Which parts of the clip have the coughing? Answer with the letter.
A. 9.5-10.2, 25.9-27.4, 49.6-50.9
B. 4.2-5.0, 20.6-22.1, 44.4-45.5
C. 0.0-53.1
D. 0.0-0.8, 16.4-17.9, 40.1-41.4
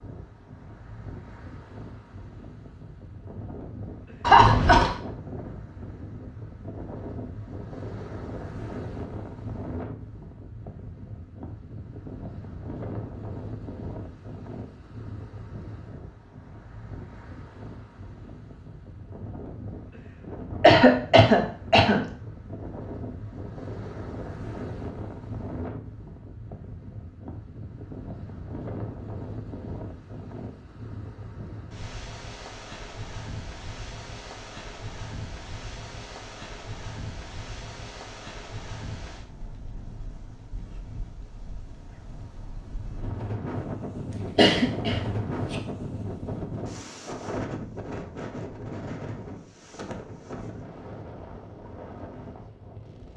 B.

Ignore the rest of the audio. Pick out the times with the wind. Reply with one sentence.
The wind can be heard from 0.0 to 53.1 s.